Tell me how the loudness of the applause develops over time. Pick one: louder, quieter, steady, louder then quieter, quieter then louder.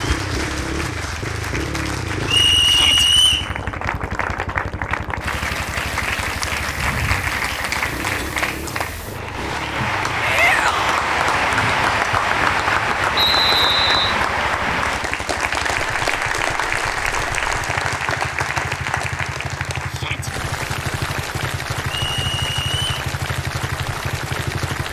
louder then quieter.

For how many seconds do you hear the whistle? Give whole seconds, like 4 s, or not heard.
3 s.